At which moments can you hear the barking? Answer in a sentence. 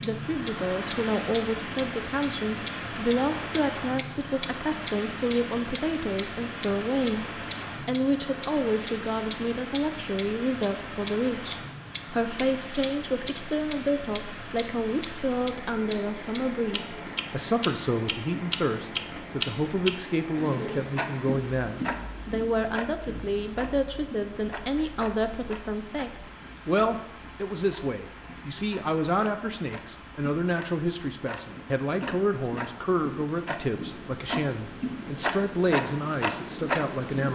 The barking can't be heard in this clip.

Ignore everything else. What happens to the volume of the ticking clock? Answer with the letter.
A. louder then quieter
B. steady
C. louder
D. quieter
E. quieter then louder
E.